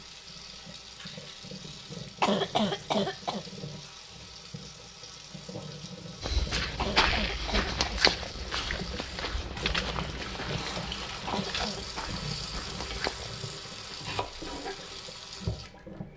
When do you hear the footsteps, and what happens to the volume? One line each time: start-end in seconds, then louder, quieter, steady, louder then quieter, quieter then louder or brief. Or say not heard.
6.2-13.3 quieter.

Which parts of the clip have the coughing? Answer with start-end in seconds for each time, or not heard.
2.2-3.5, 6.8-8.0, 11.2-12.0.